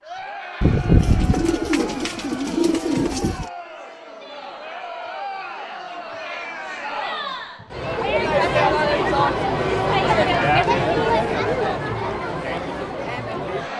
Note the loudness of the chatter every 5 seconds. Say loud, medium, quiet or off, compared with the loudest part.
quiet, loud, loud.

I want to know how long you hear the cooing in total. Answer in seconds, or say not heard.
3 s.